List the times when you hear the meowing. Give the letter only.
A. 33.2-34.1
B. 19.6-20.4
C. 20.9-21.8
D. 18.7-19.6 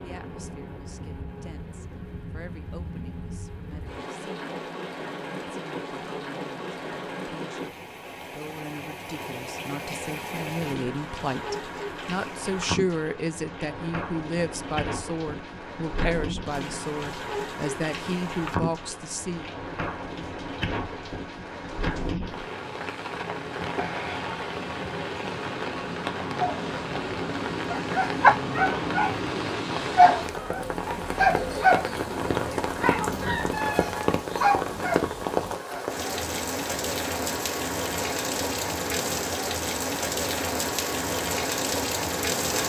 A.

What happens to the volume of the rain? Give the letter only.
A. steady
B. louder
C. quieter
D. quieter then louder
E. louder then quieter
B.